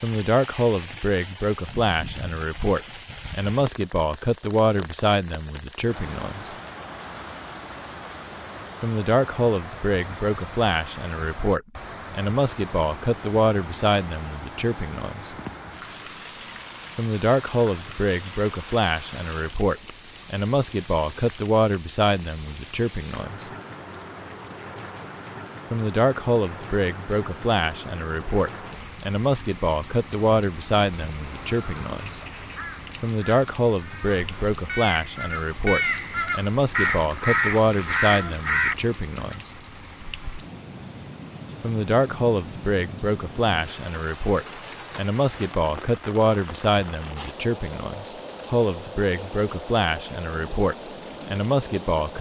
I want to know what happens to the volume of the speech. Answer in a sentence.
The loudness of the speech stays about the same.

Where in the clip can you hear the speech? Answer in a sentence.
You can hear the speech from 0.0 to 6.5 s, from 8.8 to 15.3 s, from 16.9 to 23.5 s, from 25.7 to 32.2 s, from 33.0 to 39.5 s and from 41.6 to 52.1 s.